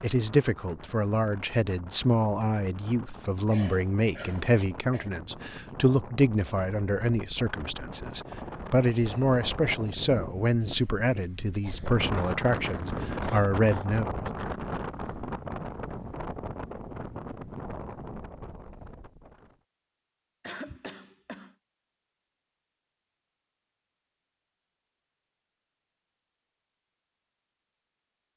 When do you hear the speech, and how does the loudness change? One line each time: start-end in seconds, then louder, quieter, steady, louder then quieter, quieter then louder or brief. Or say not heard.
0.0-14.1 steady.